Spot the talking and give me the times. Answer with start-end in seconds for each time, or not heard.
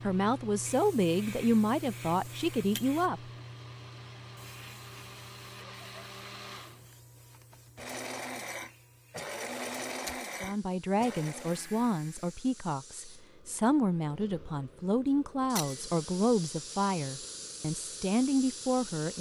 0.0-3.2, 10.4-19.1.